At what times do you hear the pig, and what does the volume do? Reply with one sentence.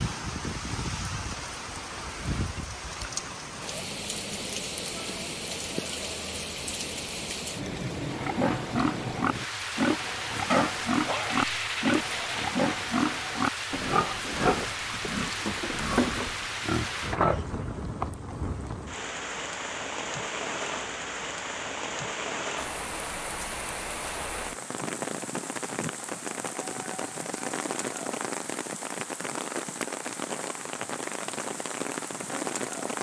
You can hear the pig from 8.1 to 17.7 s, at a steady volume.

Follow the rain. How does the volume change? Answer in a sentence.
The loudness of the rain stays about the same.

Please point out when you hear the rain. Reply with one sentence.
The rain can be heard from 0.0 to 32.9 s.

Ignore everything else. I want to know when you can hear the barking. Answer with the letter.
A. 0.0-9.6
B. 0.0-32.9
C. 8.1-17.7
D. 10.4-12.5
D.